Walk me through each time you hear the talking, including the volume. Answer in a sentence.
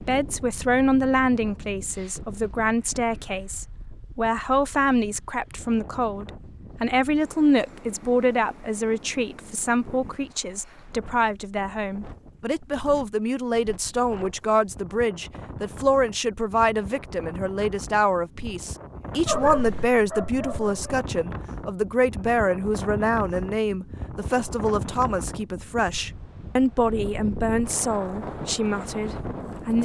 You can hear the talking from 0.0 to 29.8 s, at a steady volume.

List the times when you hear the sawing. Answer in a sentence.
You can't hear the sawing here.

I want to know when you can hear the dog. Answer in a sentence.
The dog can be heard from 19.2 to 20.8 s.